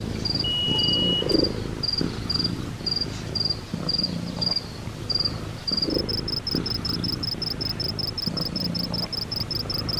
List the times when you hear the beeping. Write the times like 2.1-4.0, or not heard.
0.4-1.4.